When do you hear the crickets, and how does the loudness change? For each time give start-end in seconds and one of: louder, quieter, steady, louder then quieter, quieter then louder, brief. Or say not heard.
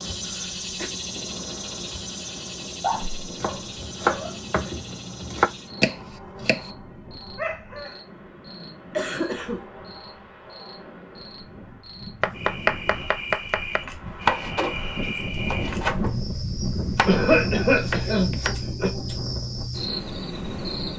0.0-20.9 quieter then louder.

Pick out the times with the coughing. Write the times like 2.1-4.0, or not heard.
0.2-0.9, 8.9-9.7, 17.1-18.9.